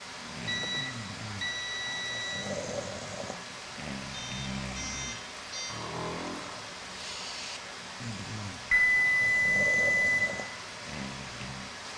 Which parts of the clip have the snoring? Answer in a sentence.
You can hear the snoring from 0.1 to 11.7 s.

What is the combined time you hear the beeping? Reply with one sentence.
You can hear the beeping for 5 seconds altogether.